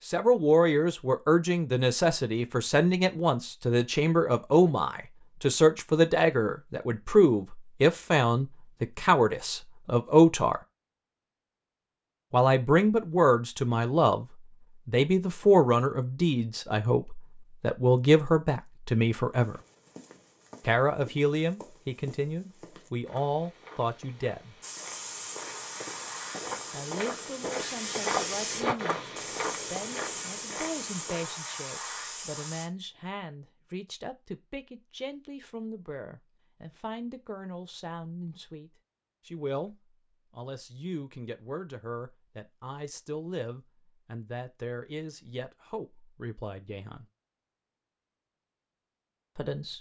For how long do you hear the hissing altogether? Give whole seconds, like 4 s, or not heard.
8 s.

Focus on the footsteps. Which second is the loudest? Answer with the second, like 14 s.
28 s.